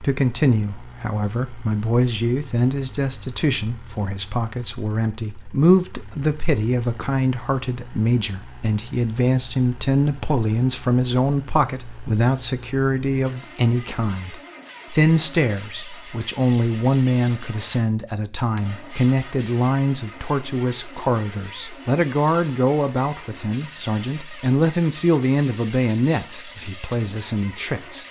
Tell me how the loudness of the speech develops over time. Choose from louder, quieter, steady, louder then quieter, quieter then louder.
steady.